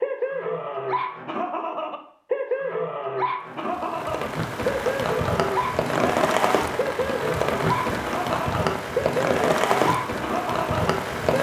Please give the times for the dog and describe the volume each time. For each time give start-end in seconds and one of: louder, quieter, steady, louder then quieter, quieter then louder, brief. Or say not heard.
0.0-11.3 steady.